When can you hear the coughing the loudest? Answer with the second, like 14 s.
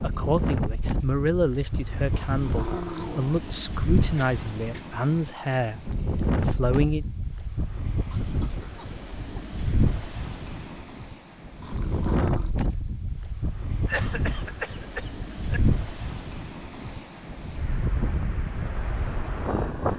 14 s.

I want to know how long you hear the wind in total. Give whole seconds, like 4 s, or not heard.
20 s.